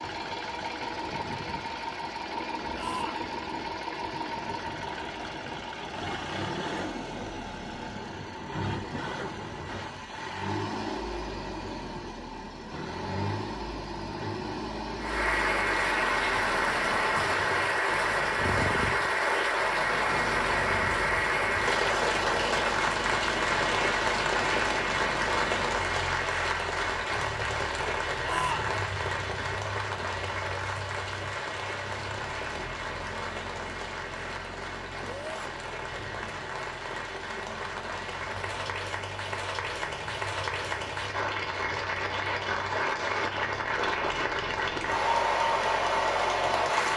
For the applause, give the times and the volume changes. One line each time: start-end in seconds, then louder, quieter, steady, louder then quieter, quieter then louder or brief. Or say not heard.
14.9-46.9 quieter then louder.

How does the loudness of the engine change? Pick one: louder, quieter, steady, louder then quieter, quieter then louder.
quieter.